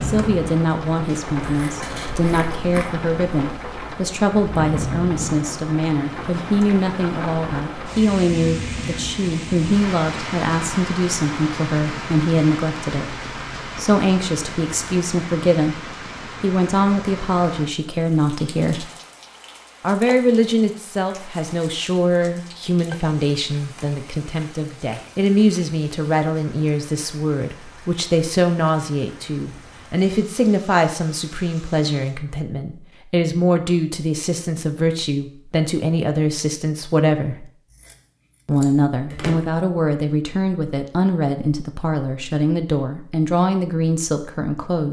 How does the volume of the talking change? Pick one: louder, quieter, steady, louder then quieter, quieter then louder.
steady.